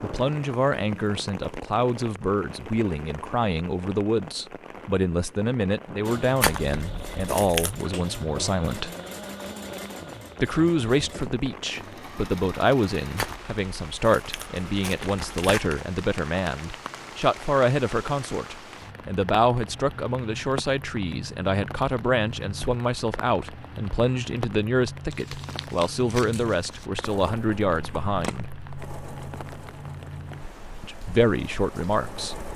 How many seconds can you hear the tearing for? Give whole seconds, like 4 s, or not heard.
6 s.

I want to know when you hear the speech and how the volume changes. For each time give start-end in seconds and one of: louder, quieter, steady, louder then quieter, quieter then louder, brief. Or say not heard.
0.0-8.9 steady
10.4-28.4 steady
30.8-32.4 brief.